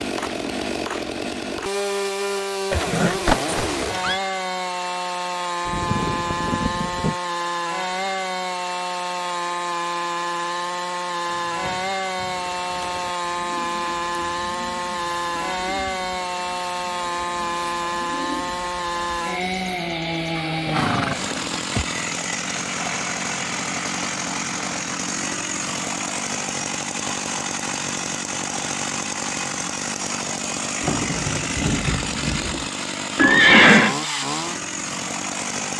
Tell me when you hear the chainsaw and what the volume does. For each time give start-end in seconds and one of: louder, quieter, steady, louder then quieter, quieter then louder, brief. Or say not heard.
0.0-35.7 steady.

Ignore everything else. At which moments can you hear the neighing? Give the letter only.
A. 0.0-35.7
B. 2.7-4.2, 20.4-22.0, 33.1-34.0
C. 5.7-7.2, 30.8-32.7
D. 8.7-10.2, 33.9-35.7
B.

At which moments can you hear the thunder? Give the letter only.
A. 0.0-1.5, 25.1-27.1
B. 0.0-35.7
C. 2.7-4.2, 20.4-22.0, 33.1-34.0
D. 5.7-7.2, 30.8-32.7
D.